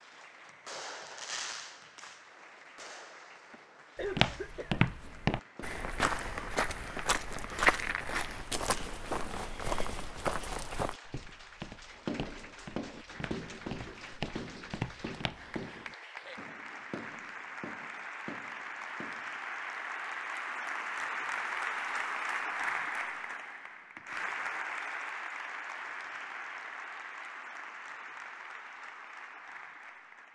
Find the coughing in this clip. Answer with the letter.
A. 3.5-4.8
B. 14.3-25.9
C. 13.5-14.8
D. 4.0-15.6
A.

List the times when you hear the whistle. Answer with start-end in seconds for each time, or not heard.
not heard.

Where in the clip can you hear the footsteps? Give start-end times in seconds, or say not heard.
4.0-15.6.